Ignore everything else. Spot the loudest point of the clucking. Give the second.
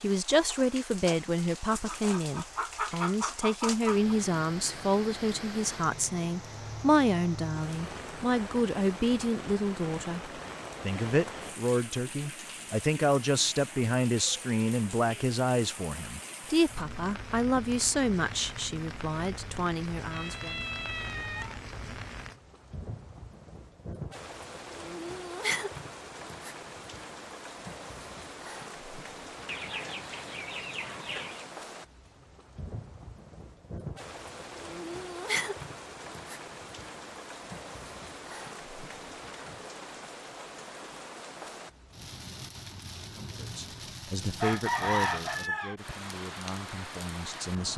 45 s.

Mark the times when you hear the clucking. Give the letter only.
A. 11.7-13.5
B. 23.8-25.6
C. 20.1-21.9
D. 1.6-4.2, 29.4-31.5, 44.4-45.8
D.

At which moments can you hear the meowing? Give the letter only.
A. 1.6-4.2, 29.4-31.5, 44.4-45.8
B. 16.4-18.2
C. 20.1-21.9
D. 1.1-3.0
C.